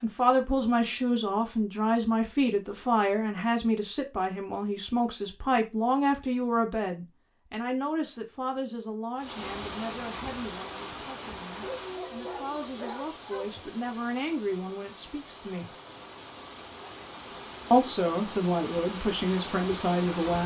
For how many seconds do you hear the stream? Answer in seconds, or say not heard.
11 s.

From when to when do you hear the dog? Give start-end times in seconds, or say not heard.
11.6-13.7.